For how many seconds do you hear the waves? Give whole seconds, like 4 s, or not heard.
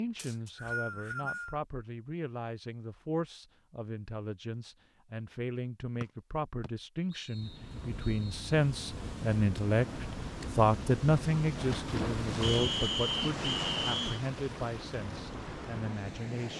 9 s.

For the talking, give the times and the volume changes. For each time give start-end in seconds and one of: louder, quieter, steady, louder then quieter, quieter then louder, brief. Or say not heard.
0.0-16.5 louder then quieter.